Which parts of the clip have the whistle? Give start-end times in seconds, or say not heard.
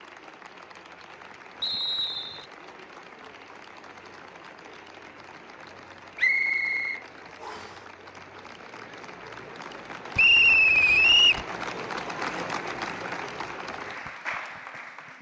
1.6-2.5, 6.2-7.7, 10.2-11.4.